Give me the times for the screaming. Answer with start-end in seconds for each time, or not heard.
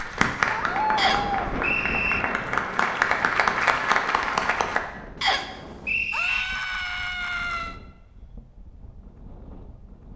0.4-1.6, 6.1-7.8.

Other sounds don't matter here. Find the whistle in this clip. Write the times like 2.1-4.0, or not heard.
0.9-2.2, 5.2-6.5.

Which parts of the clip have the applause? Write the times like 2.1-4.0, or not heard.
0.0-4.8.